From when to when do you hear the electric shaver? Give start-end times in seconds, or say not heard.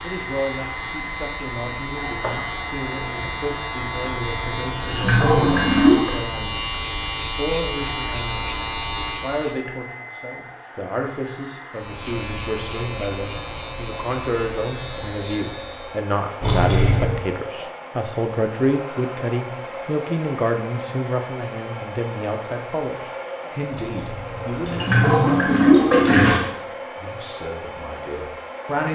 0.0-9.6, 11.8-16.0.